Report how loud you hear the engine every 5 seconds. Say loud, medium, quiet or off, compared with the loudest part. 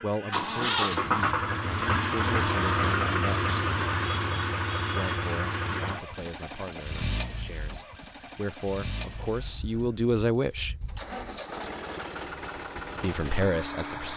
loud, medium, medium.